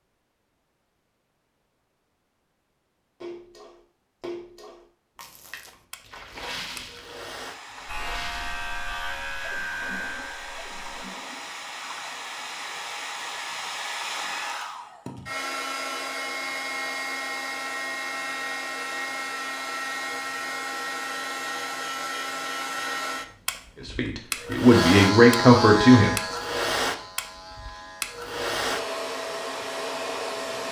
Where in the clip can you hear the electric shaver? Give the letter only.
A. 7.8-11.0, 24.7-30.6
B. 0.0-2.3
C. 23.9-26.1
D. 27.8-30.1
A.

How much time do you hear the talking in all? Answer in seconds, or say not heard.
2 s.